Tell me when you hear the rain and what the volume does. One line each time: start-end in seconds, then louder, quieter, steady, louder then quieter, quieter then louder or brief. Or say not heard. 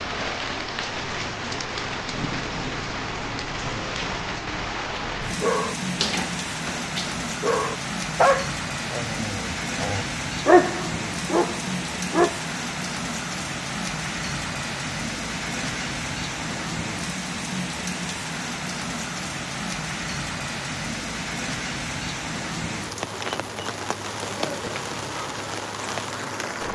0.0-26.7 steady.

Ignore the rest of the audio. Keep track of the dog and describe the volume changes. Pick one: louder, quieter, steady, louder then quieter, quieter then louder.
louder then quieter.